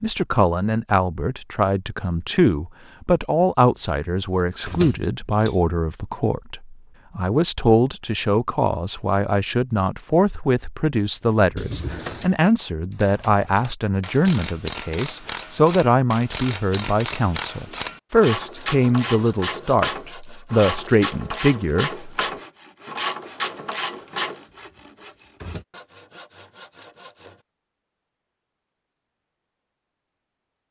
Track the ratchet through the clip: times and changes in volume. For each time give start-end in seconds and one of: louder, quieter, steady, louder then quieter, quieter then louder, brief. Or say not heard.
12.9-24.4 louder.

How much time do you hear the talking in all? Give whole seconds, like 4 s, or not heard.
22 s.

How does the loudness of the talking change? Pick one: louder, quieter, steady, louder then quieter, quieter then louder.
steady.